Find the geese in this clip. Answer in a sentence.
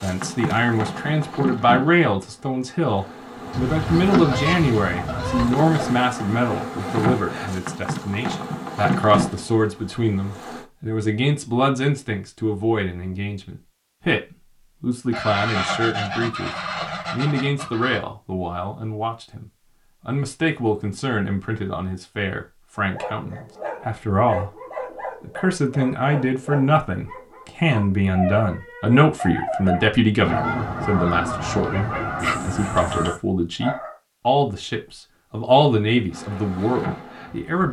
You can hear the geese from 3.5 to 5.5 s, from 15.1 to 18.0 s and from 30.2 to 33.2 s.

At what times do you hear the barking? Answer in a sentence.
The barking can be heard from 22.8 to 34.0 s.